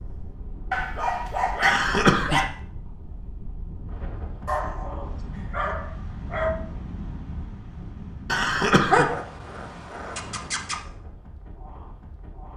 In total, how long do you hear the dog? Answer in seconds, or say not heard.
6 s.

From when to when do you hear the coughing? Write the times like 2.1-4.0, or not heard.
1.6-2.5, 8.2-9.1.